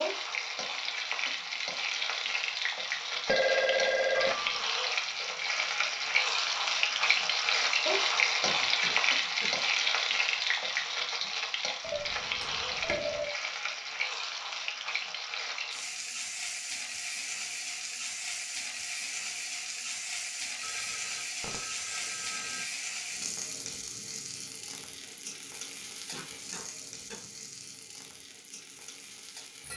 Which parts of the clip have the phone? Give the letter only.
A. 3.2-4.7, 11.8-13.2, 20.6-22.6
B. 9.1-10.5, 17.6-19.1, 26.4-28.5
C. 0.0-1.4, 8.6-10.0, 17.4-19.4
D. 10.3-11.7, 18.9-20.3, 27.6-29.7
A.